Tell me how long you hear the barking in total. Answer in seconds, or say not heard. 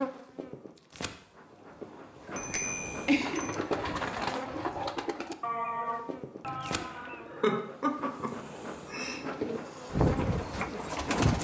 not heard.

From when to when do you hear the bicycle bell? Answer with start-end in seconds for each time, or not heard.
2.4-3.6.